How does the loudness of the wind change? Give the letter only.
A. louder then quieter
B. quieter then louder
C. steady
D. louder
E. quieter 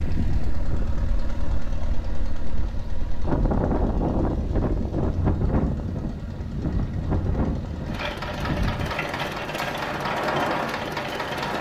D.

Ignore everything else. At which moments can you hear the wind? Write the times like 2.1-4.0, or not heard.
0.0-11.5.